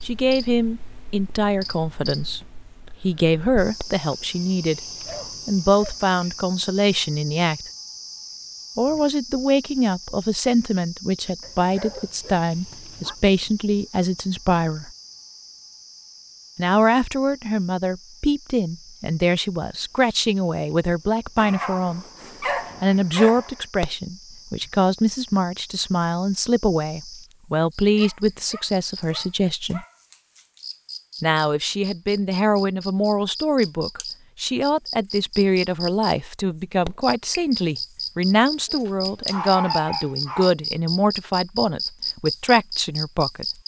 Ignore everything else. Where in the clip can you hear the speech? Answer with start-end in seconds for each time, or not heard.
0.0-4.8, 5.5-7.7, 8.8-14.9, 16.6-22.1, 22.8-29.9, 31.2-43.5.